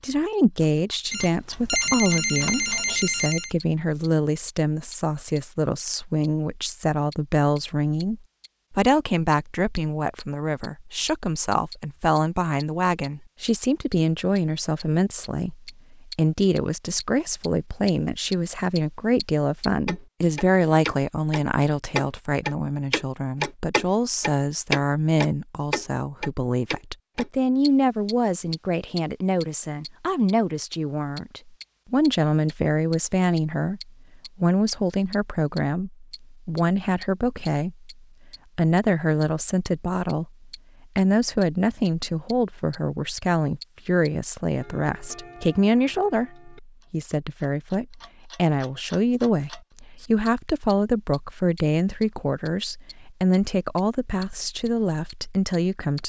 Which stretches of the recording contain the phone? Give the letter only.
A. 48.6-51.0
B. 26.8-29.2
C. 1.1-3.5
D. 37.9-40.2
C.